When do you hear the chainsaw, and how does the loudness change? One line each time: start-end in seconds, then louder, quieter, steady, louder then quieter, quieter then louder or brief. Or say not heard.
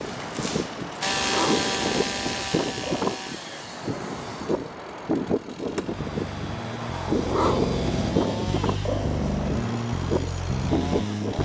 0.0-11.4 quieter then louder.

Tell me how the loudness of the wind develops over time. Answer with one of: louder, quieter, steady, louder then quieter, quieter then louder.
steady.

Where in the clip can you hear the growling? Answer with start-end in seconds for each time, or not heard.
1.1-3.2, 7.0-9.7.